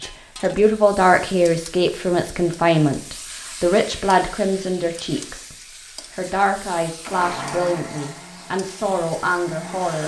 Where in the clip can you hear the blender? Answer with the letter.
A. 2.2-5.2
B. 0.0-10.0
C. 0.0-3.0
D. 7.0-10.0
D.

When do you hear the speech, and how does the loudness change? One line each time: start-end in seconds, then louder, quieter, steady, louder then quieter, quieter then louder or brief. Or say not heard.
0.0-10.0 quieter.